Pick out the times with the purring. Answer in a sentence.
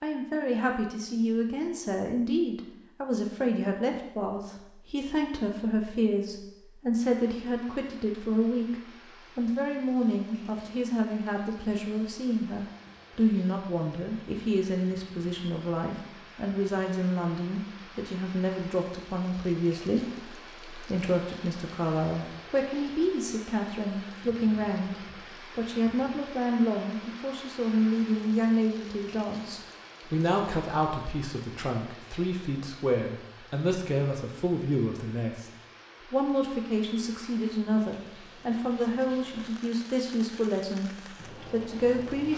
The purring can't be heard in this clip.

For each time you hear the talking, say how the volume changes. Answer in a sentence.
The talking can be heard from 0.0 to 35.5 s, at a steady volume; and from 36.1 to 42.3 s, at a steady volume.